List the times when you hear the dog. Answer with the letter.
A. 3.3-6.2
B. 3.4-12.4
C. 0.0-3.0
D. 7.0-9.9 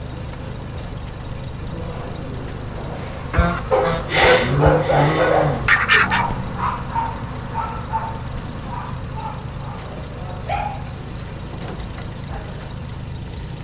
B.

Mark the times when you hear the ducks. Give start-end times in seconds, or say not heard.
3.3-6.2.